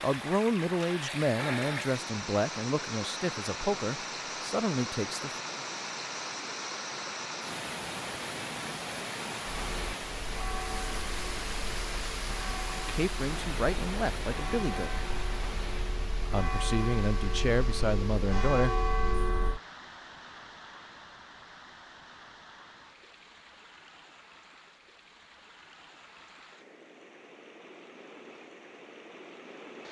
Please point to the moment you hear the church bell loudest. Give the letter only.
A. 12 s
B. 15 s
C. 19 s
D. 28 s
C.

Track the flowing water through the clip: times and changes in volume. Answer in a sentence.
You can hear the flowing water from 0.0 to 29.8 s, getting quieter.